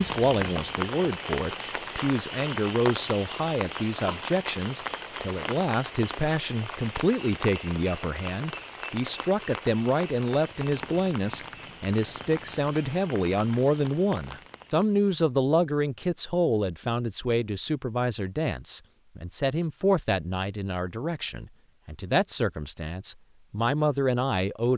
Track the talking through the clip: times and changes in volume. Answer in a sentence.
The talking can be heard from 0.0 to 24.7 s, at a steady volume.